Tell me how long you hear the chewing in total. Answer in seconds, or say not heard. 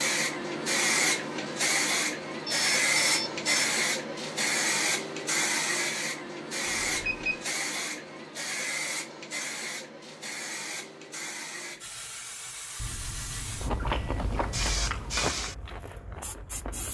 3 s.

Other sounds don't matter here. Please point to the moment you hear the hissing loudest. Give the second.
3 s.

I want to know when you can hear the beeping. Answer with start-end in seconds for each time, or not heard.
2.5-3.7, 6.9-7.5, 12.8-14.8.